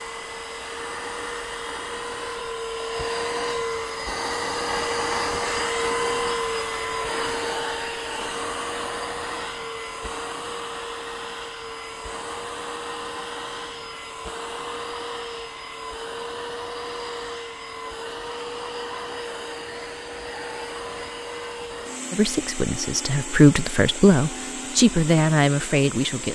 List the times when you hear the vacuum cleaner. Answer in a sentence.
The vacuum cleaner can be heard from 0.0 to 26.3 s.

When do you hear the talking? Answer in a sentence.
You can hear the talking from 22.1 to 26.3 s.